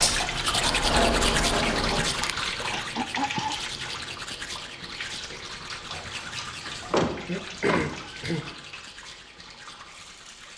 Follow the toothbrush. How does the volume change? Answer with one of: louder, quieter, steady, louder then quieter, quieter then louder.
quieter.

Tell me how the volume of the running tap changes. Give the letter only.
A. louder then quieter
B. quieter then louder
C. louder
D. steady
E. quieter
E.